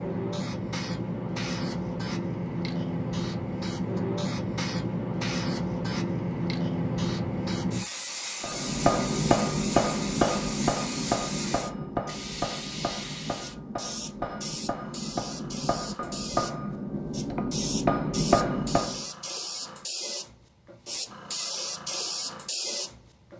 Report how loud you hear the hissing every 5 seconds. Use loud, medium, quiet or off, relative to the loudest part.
loud, loud, medium, medium, loud.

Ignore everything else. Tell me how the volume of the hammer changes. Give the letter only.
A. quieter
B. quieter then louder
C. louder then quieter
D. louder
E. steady
B.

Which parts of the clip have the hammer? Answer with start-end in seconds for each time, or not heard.
8.4-19.1.